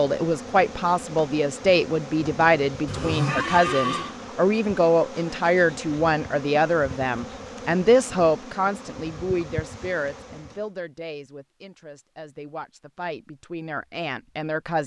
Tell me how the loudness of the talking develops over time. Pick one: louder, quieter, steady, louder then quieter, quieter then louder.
quieter.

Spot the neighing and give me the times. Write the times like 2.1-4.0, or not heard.
2.9-4.2.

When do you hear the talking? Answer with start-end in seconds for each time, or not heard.
0.0-14.8.